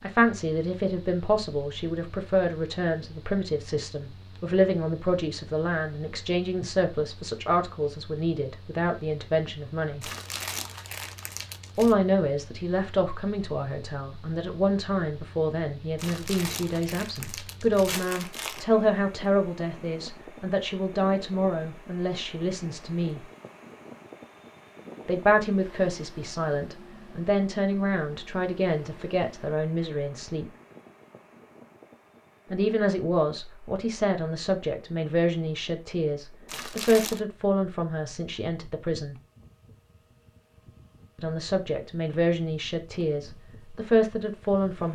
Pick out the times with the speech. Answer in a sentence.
You can hear the speech from 0.0 to 10.1 s, from 11.8 to 23.2 s, from 25.1 to 30.4 s, from 32.5 to 39.1 s and from 41.1 to 44.9 s.